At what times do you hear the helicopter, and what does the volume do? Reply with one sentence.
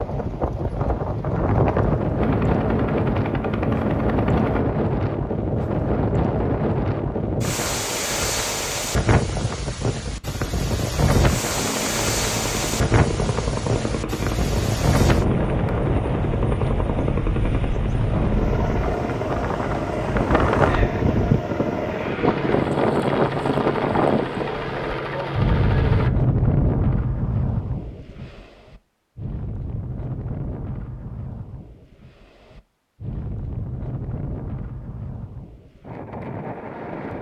You can hear the helicopter briefly from 2.1 to 4.7 s; and from 11.6 to 26.1 s, at a steady volume.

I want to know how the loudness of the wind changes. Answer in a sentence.
The volume of the wind goes down.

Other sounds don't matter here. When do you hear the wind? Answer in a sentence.
You can hear the wind from 0.0 to 37.1 s.